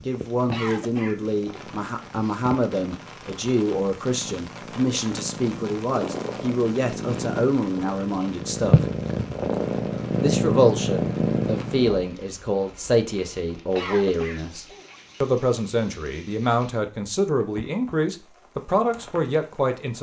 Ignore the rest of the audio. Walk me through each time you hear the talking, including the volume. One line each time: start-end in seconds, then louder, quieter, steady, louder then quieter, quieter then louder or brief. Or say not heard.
0.1-8.8 steady
10.2-19.9 steady.